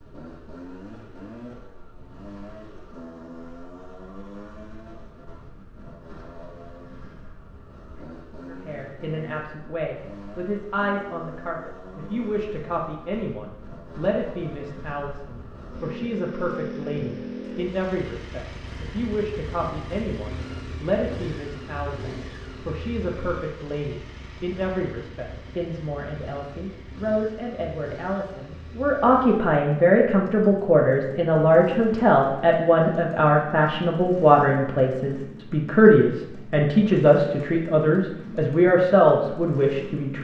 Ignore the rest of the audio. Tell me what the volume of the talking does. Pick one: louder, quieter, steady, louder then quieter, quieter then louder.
louder.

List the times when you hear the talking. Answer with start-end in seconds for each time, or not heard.
8.4-40.1.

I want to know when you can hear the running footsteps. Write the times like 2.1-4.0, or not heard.
not heard.